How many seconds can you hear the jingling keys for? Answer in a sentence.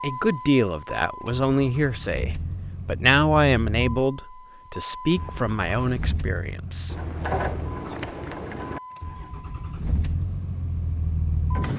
You can hear the jingling keys for 2 seconds altogether.